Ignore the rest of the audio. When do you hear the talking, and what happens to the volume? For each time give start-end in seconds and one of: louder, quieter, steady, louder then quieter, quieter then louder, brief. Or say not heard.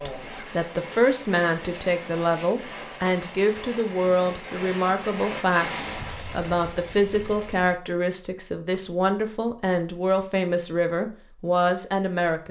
0.1-12.4 steady.